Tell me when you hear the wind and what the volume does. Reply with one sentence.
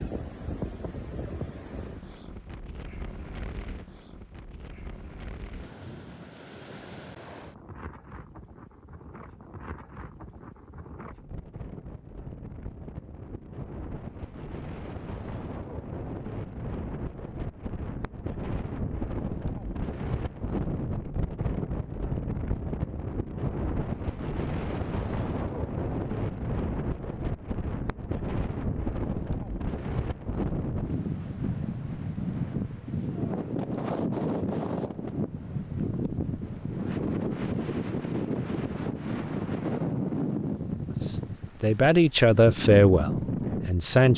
The wind can be heard from 0.0 to 44.1 s, getting louder.